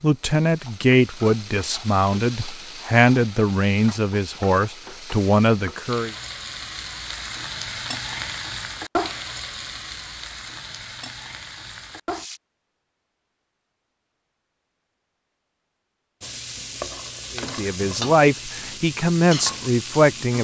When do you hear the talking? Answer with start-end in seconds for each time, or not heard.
0.0-6.2, 17.4-20.4.